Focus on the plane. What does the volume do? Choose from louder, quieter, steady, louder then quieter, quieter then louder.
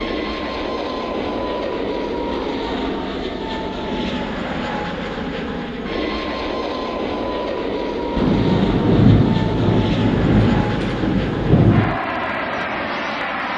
steady.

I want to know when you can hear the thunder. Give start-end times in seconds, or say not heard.
8.2-12.0.